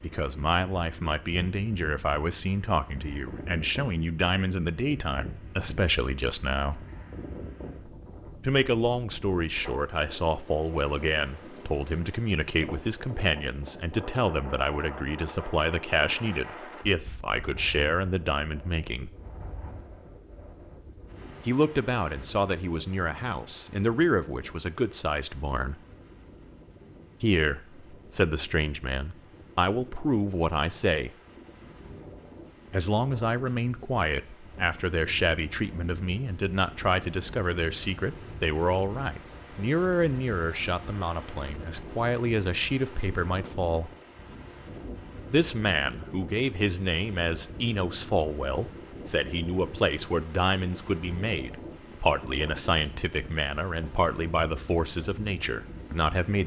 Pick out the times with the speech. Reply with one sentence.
The speech can be heard from 0.0 to 6.8 s, from 8.4 to 19.1 s, from 21.4 to 25.8 s, from 27.2 to 31.1 s, from 32.7 to 43.9 s and from 45.3 to 56.4 s.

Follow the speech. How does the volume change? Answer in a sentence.
The loudness of the speech stays about the same.